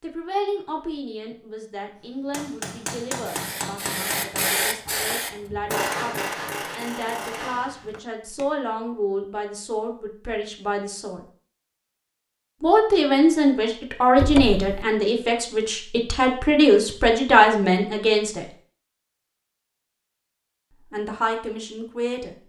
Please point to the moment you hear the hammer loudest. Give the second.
6 s.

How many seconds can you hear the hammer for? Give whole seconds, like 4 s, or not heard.
6 s.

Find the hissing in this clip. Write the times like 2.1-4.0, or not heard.
3.2-5.3.